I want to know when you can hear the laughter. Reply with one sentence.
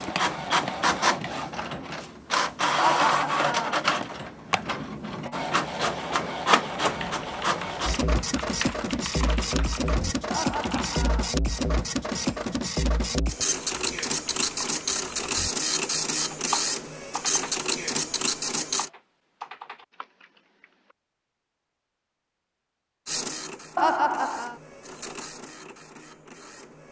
You can hear the laughter from 2.8 to 3.8 s, from 10.3 to 11.3 s and from 23.8 to 24.6 s.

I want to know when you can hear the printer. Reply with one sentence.
You can hear the printer from 0.0 to 18.9 s and from 23.1 to 26.8 s.